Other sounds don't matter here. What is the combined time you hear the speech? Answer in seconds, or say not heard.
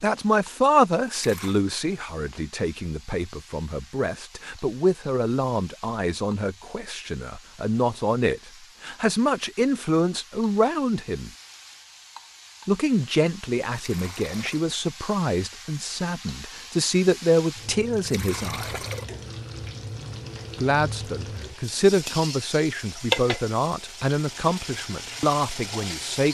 23 s.